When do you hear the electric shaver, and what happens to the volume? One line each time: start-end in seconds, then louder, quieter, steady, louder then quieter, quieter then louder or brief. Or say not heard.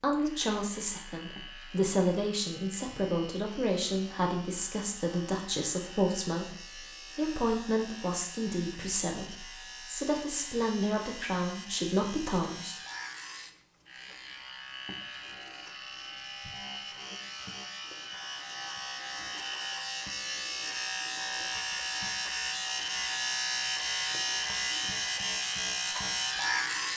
0.0-26.9 louder.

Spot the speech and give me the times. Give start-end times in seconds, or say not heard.
0.0-12.8.